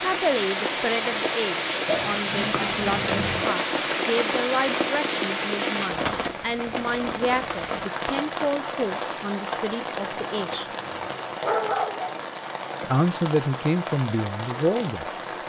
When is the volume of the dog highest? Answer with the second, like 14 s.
12 s.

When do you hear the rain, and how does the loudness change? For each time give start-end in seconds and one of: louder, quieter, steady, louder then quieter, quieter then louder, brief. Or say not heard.
0.0-15.4 quieter.